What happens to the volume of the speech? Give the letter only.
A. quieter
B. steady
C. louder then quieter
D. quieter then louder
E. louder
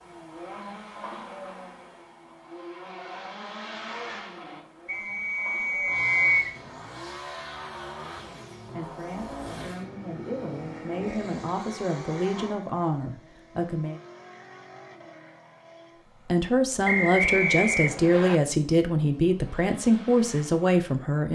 E.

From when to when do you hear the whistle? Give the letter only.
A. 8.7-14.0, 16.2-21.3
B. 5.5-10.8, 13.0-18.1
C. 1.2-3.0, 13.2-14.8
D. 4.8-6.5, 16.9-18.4
D.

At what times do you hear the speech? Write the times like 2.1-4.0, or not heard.
8.7-14.0, 16.2-21.3.